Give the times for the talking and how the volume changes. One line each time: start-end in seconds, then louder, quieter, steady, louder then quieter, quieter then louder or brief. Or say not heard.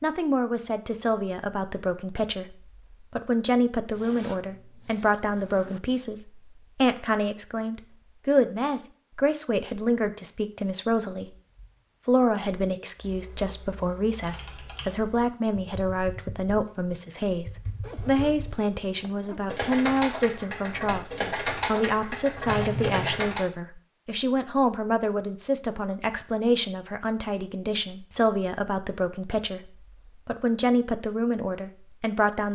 0.0-32.5 steady.